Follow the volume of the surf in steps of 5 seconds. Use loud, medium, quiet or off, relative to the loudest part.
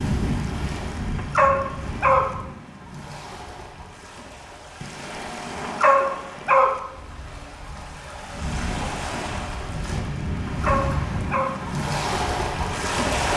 medium, medium, loud.